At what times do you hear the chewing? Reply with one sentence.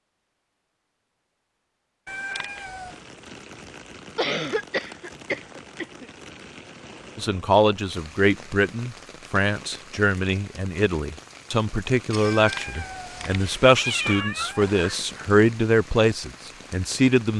You can't hear the chewing here.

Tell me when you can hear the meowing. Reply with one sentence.
You can hear the meowing from 2.0 to 3.0 s and from 12.3 to 15.0 s.